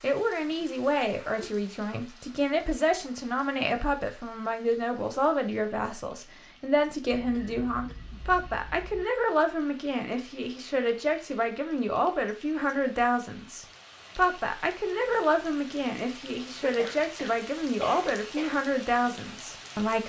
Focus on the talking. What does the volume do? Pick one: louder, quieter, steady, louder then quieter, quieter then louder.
steady.